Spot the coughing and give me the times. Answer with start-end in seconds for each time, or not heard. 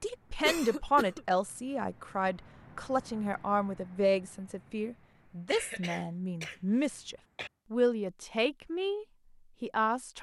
0.4-1.2, 5.5-7.5.